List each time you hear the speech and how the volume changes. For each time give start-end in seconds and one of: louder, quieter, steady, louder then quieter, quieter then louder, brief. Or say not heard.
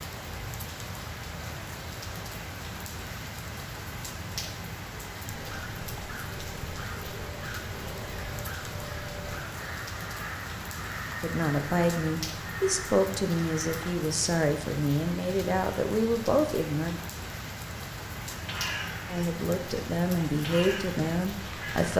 11.2-16.9 steady
19.1-21.9 brief.